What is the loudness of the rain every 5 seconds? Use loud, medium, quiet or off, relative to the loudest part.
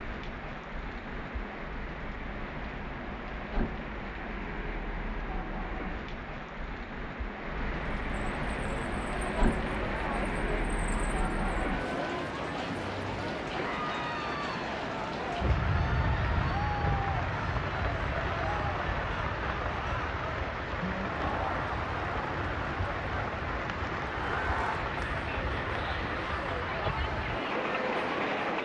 medium, loud, loud, loud, loud, loud.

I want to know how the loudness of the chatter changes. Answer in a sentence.
The loudness of the chatter stays about the same.